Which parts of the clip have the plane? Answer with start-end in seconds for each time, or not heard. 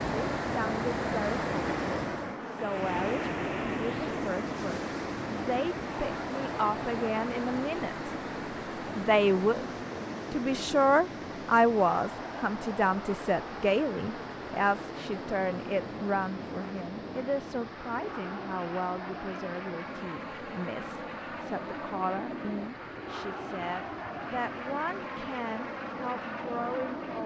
0.0-27.2.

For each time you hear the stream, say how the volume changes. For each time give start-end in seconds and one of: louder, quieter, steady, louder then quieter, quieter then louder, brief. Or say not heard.
0.0-27.2 quieter.